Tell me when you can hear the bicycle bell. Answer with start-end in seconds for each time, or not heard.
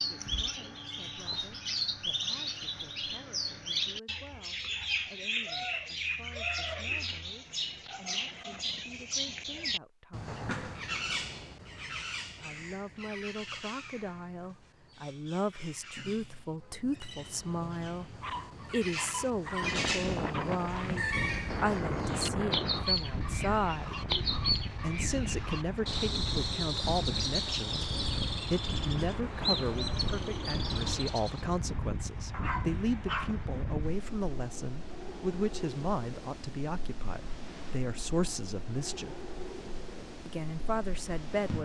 not heard.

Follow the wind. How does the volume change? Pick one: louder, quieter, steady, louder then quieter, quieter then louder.
quieter.